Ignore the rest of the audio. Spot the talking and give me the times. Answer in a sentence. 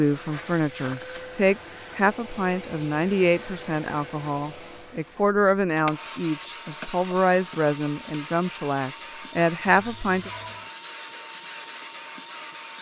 The talking can be heard from 0.0 to 10.3 s.